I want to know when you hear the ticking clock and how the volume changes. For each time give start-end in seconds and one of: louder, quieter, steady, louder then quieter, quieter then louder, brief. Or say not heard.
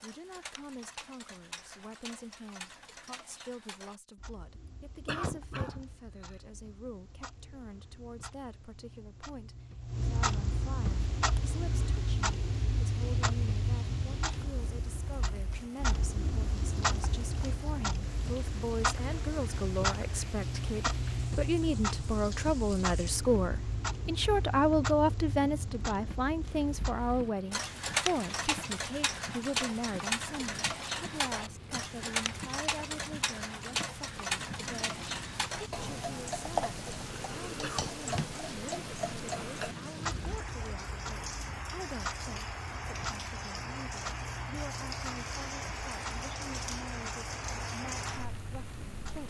0.0-49.2 louder then quieter.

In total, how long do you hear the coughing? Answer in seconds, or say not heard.
2 s.